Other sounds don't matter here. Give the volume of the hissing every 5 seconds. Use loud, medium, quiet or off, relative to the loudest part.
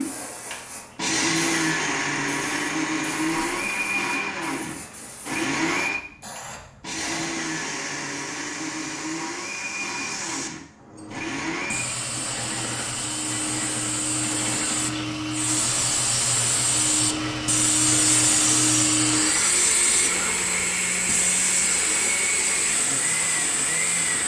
quiet, quiet, medium, loud, medium.